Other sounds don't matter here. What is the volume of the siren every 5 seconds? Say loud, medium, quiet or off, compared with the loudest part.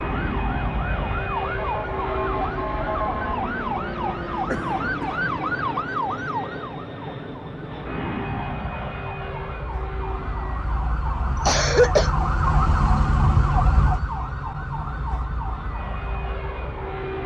loud, medium, loud, medium.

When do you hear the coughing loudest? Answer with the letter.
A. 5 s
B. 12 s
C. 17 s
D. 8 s
B.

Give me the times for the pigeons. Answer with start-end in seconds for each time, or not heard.
not heard.